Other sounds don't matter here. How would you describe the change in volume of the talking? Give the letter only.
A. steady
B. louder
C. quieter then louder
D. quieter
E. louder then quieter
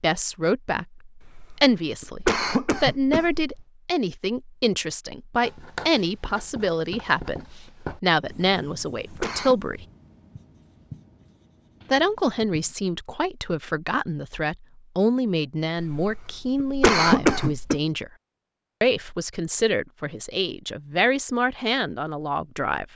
A.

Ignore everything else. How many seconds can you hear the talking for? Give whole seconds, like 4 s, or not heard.
20 s.